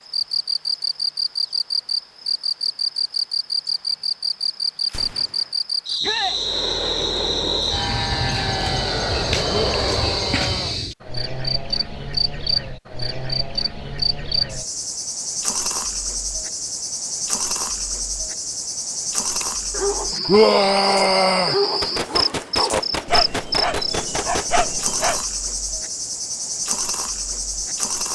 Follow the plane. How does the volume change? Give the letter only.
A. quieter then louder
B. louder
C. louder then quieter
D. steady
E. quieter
D.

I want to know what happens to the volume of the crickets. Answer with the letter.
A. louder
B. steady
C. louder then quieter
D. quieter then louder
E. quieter
B.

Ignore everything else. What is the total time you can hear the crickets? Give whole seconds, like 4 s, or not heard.
28 s.